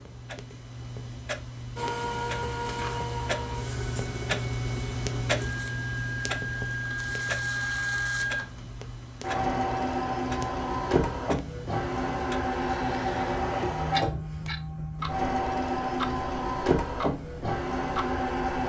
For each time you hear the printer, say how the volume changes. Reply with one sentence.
The printer can be heard from 1.8 to 18.6 s, getting louder.